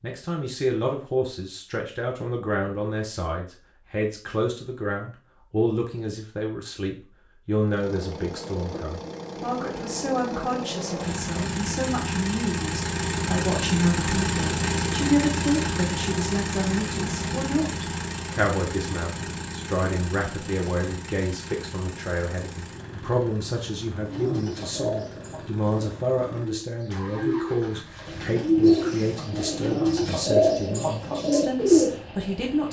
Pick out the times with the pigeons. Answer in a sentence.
You can hear the pigeons from 23.9 to 31.9 s.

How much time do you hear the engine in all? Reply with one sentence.
The engine can be heard for 25 seconds in total.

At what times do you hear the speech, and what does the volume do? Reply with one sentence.
The speech can be heard from 0.0 to 32.6 s, at a steady volume.